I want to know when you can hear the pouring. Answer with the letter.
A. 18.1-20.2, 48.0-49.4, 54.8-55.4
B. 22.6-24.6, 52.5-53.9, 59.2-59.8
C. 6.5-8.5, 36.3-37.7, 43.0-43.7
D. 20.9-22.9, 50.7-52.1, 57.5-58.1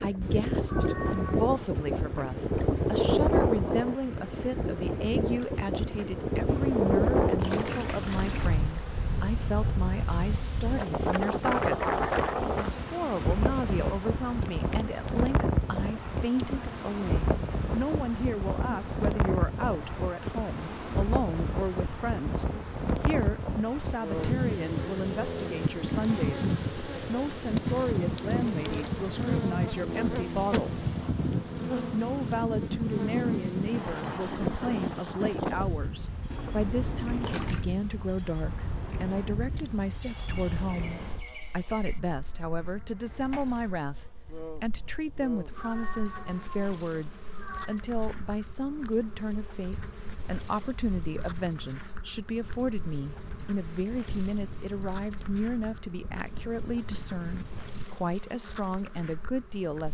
C.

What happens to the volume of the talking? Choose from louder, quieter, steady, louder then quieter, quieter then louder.
steady.